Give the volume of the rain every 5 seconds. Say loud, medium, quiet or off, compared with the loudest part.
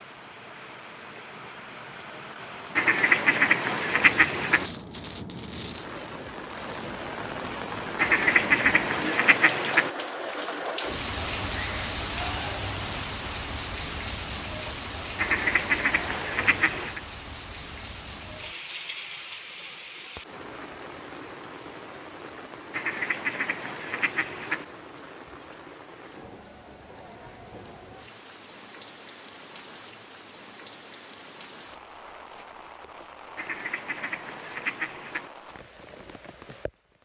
medium, loud, loud, medium, medium, quiet, quiet, quiet.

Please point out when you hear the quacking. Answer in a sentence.
You can hear the quacking from 2.8 to 4.7 s, from 8.0 to 9.9 s, from 15.2 to 17.0 s, from 22.7 to 24.6 s and from 33.4 to 35.3 s.